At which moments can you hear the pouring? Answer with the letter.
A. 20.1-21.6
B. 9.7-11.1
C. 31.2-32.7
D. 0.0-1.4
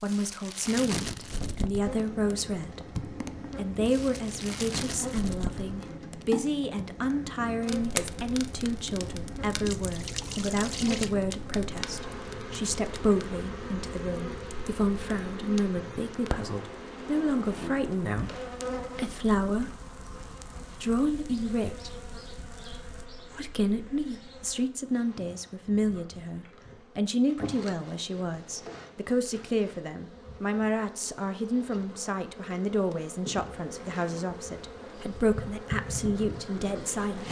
B.